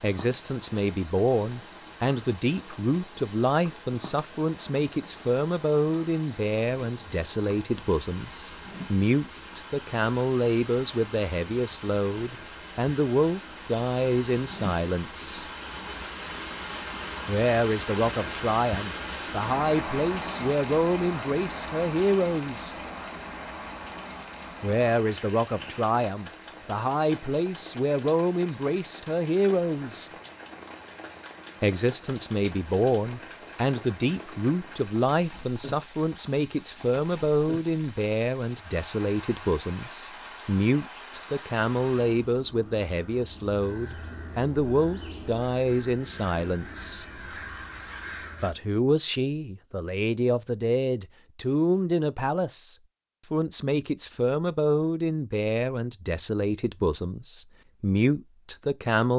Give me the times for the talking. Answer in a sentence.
The talking can be heard from 0.0 to 15.4 s, from 17.2 to 22.8 s, from 24.6 to 30.1 s, from 31.6 to 47.0 s and from 48.4 to 59.1 s.